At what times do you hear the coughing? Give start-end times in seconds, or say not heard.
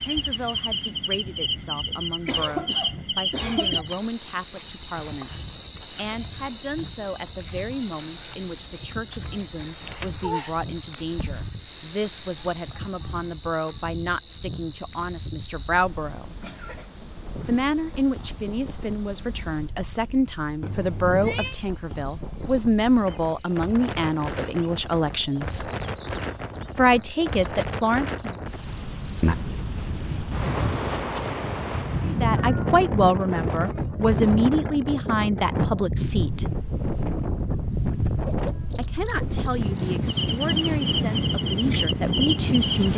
1.9-3.9, 16.2-16.9, 37.8-39.3.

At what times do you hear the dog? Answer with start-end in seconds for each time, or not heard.
not heard.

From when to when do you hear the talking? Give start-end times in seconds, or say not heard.
0.0-16.4, 17.4-25.7, 26.8-28.4, 32.0-36.5, 38.8-42.9.